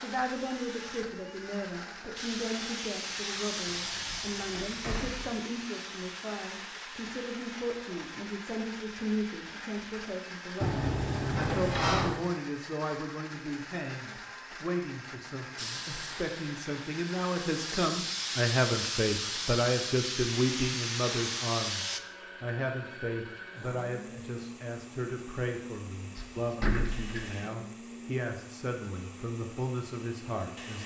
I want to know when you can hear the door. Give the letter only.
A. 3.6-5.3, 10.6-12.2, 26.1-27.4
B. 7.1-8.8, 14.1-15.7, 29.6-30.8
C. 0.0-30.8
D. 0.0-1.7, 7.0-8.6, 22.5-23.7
A.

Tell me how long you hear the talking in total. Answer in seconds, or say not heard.
31 s.